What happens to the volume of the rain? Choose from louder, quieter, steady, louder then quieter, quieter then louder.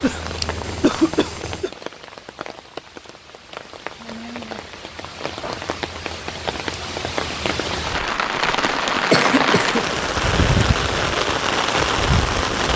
louder.